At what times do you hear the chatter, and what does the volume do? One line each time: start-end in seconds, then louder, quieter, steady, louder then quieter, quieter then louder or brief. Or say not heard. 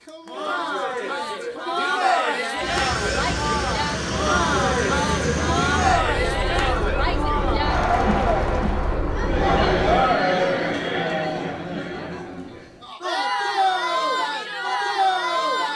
0.1-15.7 steady.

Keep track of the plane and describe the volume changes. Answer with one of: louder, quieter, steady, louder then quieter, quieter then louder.
steady.